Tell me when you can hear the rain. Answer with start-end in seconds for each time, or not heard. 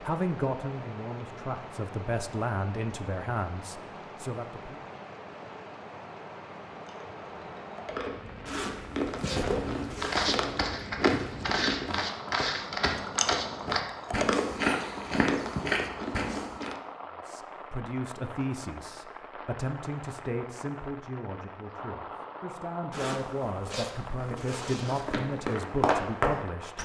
0.0-26.7.